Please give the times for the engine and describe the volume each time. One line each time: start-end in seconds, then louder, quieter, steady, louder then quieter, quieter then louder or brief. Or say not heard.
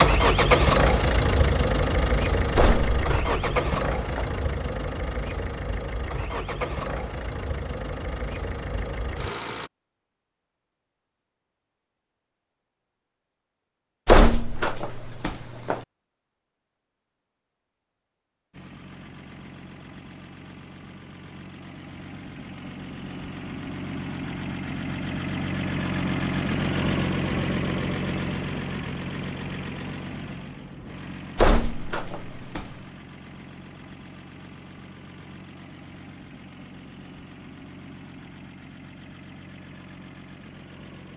0.0-9.7 quieter
18.5-41.1 louder then quieter.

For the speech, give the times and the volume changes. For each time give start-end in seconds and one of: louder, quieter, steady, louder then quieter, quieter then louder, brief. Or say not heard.
not heard.